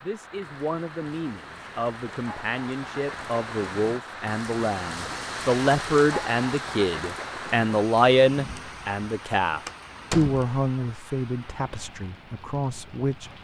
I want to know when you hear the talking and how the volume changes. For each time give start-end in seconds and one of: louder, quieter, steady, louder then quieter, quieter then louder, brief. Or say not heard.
0.0-13.3 louder then quieter.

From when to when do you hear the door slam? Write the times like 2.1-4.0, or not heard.
9.7-10.4.